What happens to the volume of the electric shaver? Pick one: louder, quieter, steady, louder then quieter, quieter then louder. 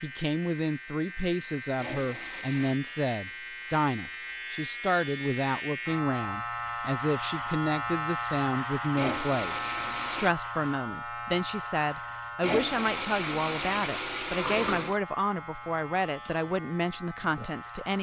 louder then quieter.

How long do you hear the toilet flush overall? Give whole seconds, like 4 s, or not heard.
5 s.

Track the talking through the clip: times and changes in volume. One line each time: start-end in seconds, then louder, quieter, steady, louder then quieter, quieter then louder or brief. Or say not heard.
0.0-17.9 steady.